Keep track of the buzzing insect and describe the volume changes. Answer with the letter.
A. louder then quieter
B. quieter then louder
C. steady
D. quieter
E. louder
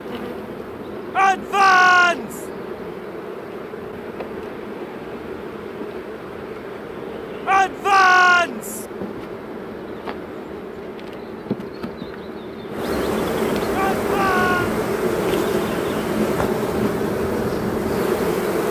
E.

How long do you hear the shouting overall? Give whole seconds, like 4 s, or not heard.
4 s.